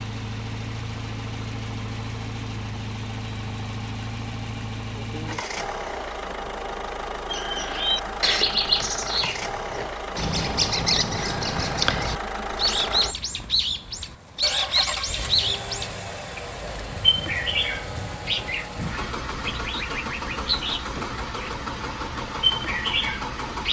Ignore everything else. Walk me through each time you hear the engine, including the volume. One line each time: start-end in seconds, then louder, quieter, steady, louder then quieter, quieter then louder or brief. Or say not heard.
0.0-23.6 steady.